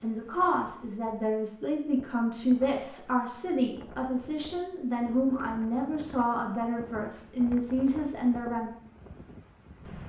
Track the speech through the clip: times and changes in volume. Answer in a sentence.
The speech can be heard from 0.0 to 8.7 s, at a steady volume.